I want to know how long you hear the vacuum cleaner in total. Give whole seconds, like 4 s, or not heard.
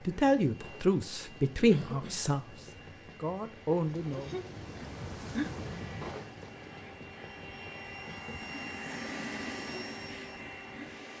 11 s.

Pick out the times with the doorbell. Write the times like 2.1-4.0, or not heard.
not heard.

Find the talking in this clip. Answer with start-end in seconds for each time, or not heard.
0.1-2.5, 3.1-4.3.